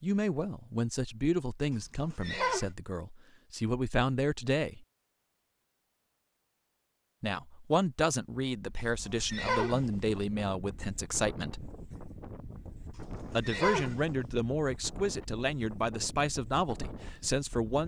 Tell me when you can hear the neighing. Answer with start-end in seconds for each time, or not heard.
1.7-2.7, 8.8-9.8, 13.2-14.0.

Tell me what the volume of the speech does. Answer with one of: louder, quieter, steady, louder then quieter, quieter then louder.
steady.